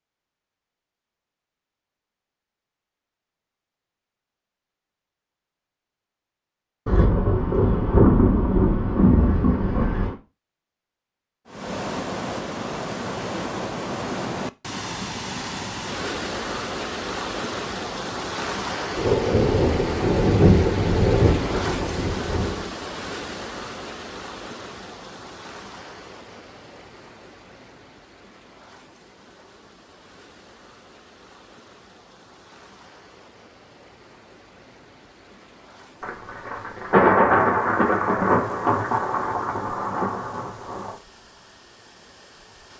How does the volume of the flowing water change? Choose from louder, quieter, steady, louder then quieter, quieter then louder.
quieter.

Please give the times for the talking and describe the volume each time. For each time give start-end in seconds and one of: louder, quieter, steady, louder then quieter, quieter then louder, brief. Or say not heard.
not heard.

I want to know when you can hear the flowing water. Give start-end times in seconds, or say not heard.
11.4-42.7.